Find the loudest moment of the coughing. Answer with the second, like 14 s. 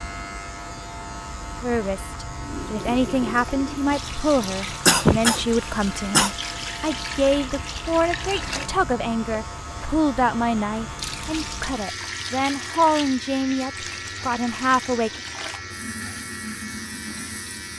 5 s.